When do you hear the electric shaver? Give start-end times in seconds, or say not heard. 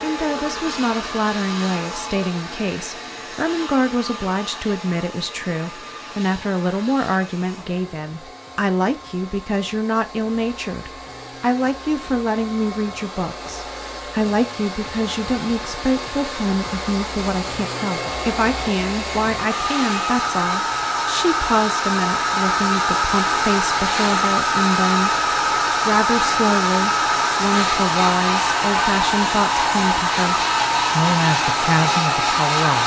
not heard.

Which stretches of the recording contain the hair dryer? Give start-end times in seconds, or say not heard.
0.0-32.8.